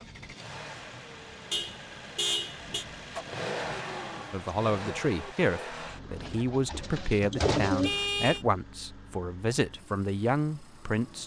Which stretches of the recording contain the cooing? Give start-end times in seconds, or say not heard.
5.8-8.2.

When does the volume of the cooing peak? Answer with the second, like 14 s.
8 s.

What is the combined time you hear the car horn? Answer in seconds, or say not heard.
2 s.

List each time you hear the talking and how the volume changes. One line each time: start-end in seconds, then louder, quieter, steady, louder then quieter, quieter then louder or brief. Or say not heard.
4.3-11.2 steady.